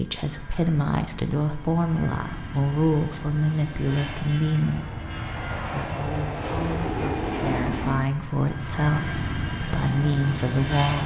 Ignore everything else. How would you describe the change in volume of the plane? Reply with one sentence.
The loudness of the plane goes up.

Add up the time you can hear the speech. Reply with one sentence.
You can hear the speech for 11 seconds altogether.